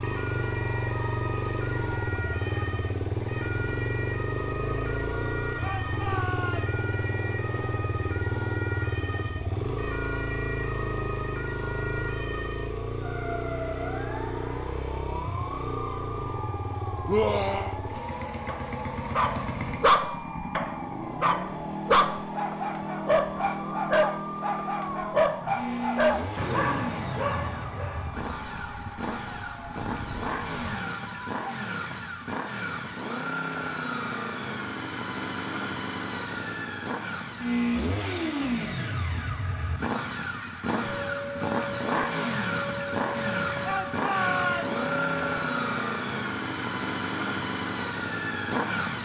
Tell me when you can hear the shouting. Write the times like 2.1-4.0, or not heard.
5.6-6.8, 17.1-17.8, 43.6-44.8.